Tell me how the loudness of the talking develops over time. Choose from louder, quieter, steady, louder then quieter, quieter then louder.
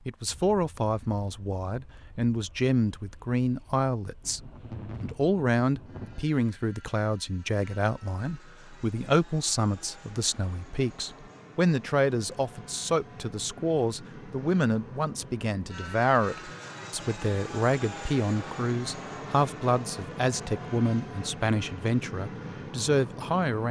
steady.